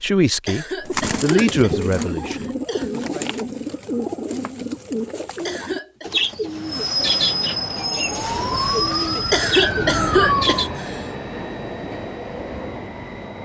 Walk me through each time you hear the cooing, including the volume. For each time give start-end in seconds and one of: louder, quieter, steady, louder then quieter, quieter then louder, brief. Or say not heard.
0.8-10.7 steady.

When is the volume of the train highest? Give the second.
7 s.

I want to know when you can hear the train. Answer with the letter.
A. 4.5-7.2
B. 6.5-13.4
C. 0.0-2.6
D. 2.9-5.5
B.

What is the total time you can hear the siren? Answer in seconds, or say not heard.
3 s.